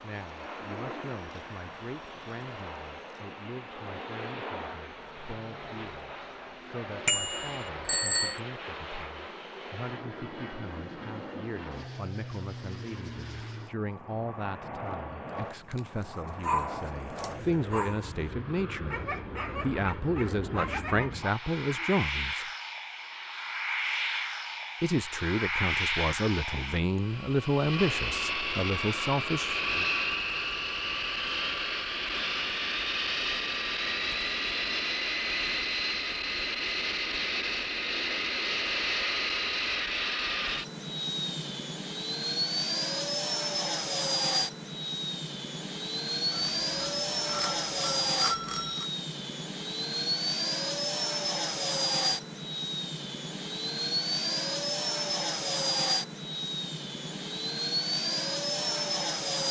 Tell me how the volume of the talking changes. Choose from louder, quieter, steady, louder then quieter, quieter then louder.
louder.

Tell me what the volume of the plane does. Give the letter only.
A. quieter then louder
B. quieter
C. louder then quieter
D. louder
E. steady
D.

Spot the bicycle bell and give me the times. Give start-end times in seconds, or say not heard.
7.0-8.4, 46.3-48.9.